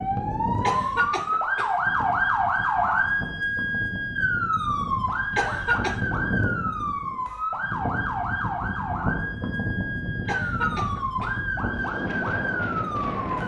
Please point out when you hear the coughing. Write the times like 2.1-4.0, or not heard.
0.6-1.8, 5.3-6.0, 10.2-11.3.